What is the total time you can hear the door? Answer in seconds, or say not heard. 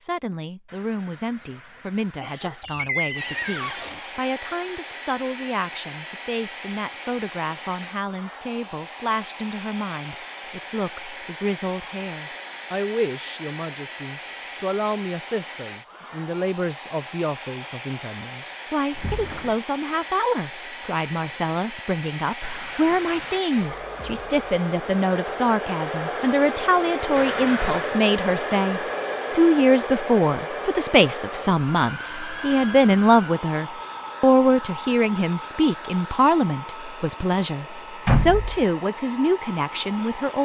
3 s.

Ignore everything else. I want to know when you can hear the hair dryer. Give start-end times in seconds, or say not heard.
3.1-40.3.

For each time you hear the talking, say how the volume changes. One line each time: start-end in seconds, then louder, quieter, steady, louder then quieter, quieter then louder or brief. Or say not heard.
0.0-40.3 louder.